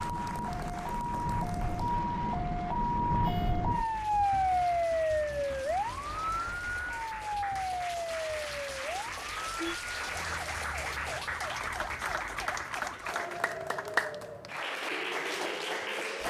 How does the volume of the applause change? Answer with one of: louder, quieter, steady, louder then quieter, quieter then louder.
louder.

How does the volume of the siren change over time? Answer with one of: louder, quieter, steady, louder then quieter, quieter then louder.
quieter.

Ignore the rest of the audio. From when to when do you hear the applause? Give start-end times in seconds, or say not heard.
0.0-16.2.